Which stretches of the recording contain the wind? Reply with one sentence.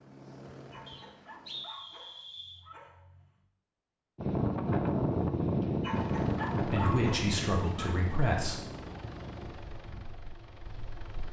You can hear the wind from 4.2 to 11.2 s.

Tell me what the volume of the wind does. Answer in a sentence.
The volume of the wind goes down.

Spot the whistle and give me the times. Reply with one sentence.
You can hear the whistle from 0.8 to 2.6 s.